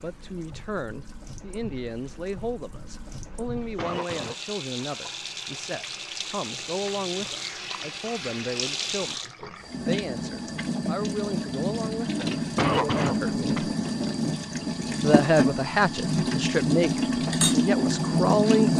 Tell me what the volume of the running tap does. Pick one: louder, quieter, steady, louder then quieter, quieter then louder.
louder.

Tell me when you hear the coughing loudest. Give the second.
13 s.